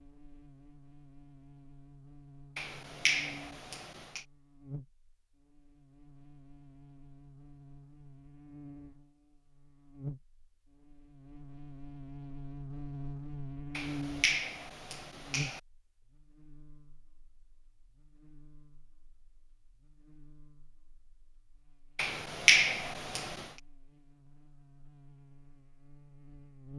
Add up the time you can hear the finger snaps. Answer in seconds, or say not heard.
5 s.